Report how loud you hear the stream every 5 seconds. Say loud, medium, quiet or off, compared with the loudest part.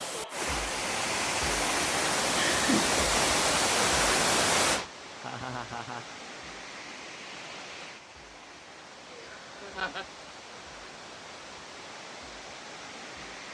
loud, quiet, quiet.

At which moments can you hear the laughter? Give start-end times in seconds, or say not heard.
2.4-3.0, 5.2-6.0, 9.1-10.1.